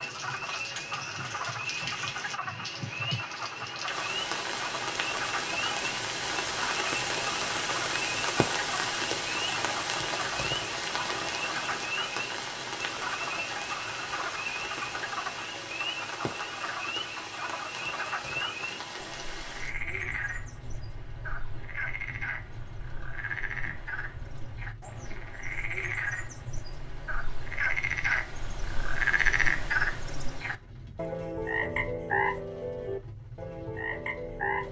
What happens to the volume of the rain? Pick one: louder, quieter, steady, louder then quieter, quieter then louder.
quieter.